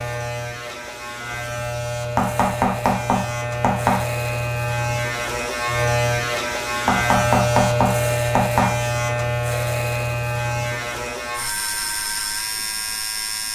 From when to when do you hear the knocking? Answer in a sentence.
The knocking can be heard from 2.1 to 4.0 s and from 6.8 to 8.7 s.